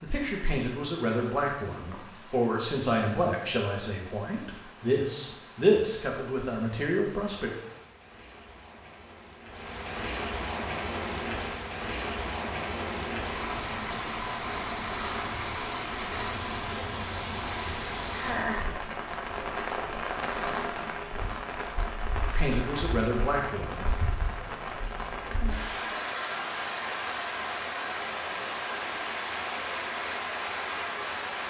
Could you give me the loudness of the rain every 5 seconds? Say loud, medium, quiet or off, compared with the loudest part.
quiet, quiet, loud, loud, loud, loud, loud.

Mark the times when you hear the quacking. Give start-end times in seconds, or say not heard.
not heard.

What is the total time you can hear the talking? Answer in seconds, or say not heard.
9 s.